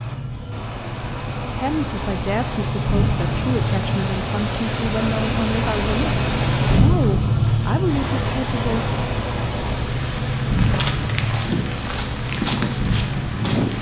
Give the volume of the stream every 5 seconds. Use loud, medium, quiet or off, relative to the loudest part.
loud, loud, medium.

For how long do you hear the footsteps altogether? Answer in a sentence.
You can hear the footsteps for 3 seconds altogether.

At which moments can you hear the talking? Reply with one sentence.
You can hear the talking from 1.5 to 8.8 s.